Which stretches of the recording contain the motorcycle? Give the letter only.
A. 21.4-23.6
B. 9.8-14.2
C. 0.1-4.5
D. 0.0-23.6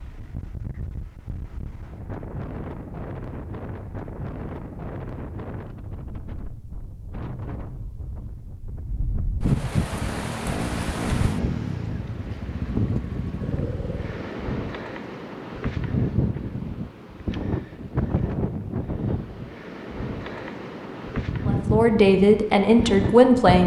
B.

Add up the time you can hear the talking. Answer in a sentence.
The talking can be heard for 2 seconds in total.